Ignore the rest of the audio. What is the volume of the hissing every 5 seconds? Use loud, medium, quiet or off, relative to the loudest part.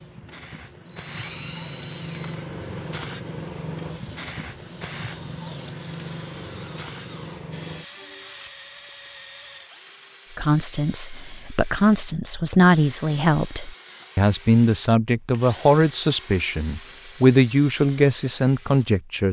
loud, loud, off, off.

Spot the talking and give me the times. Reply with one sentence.
The talking can be heard from 10.3 to 19.2 s.